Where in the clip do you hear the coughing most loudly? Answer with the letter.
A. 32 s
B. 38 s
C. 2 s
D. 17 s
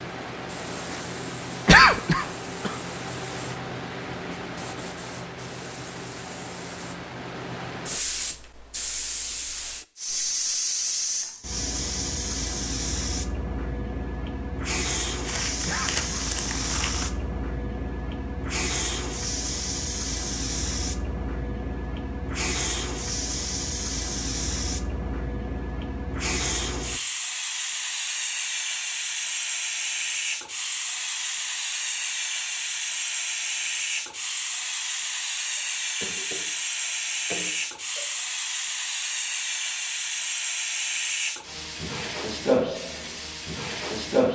C.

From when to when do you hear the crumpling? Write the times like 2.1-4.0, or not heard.
15.2-17.1.